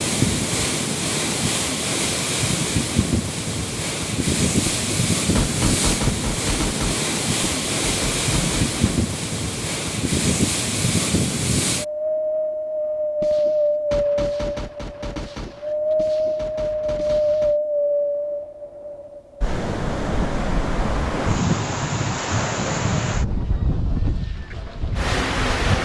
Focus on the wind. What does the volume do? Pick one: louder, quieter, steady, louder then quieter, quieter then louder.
steady.